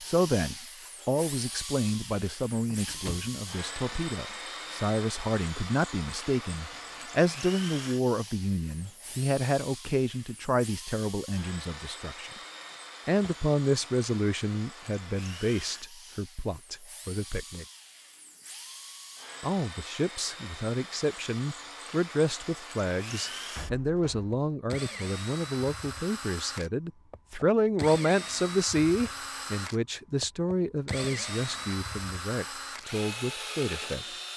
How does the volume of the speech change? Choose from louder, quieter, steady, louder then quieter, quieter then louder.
steady.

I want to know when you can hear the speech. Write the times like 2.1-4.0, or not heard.
0.0-12.3, 13.1-17.6, 19.4-34.0.